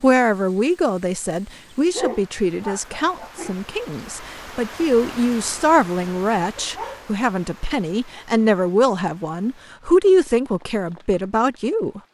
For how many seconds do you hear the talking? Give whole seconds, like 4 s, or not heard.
12 s.